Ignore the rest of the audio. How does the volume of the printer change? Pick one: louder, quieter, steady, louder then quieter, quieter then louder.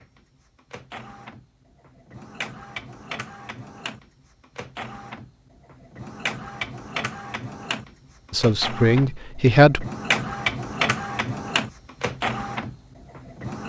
louder.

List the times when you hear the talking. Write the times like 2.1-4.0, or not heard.
8.3-9.8.